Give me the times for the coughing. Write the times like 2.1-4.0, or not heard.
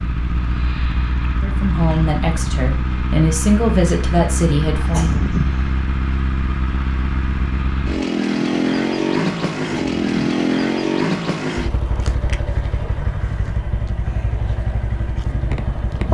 4.8-5.6, 9.8-10.3.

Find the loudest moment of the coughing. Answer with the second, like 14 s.
5 s.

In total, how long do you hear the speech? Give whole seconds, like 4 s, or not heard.
4 s.